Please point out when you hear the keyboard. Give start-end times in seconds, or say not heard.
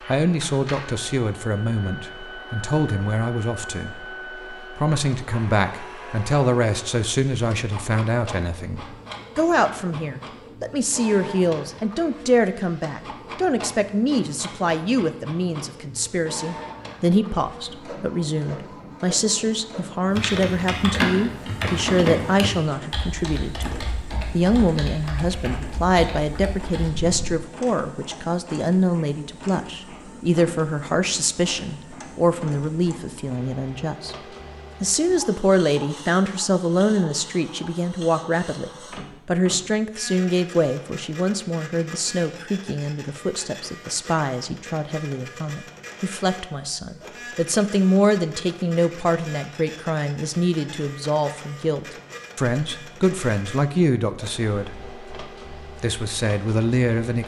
20.1-27.4.